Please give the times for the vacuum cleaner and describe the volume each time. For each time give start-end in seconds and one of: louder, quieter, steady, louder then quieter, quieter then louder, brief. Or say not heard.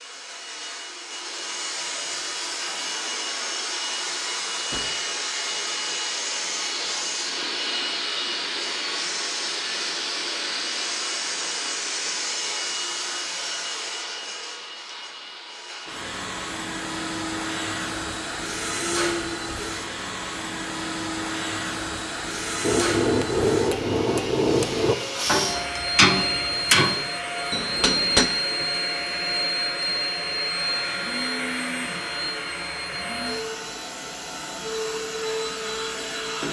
0.0-36.4 steady.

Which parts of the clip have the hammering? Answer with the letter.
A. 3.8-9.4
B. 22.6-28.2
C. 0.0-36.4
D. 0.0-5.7
B.